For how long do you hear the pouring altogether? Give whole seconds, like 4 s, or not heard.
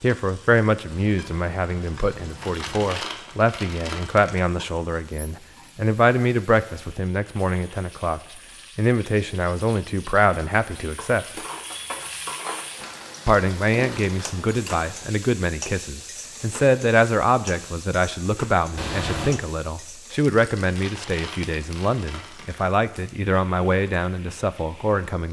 3 s.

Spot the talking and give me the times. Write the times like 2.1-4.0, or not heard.
0.0-11.4, 13.2-25.2.